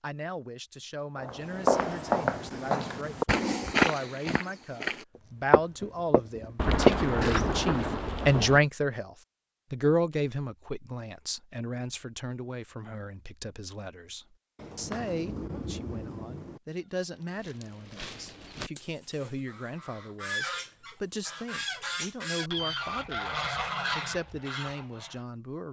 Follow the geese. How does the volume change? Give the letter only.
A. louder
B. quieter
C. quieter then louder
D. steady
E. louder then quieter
A.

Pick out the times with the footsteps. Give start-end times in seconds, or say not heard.
1.1-7.5.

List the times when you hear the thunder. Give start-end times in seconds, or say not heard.
6.5-8.6, 14.6-16.6.